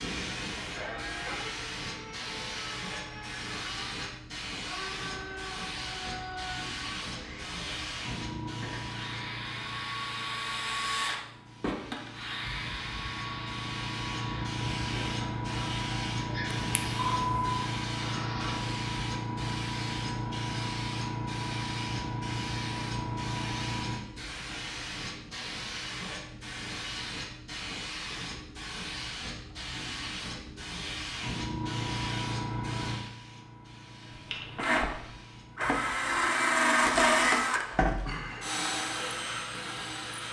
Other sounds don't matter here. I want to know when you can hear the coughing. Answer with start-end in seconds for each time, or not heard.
not heard.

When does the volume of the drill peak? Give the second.
37 s.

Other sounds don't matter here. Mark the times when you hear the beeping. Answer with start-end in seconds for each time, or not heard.
16.4-17.6.